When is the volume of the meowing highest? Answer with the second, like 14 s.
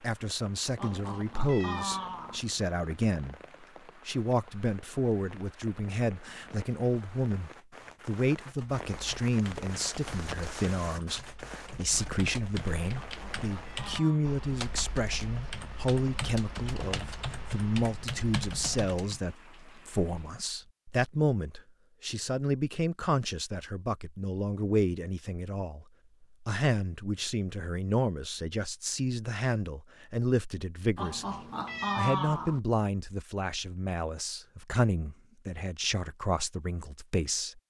32 s.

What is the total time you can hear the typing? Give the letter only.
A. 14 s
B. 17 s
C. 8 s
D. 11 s
D.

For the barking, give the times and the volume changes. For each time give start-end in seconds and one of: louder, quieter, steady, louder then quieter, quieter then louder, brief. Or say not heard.
not heard.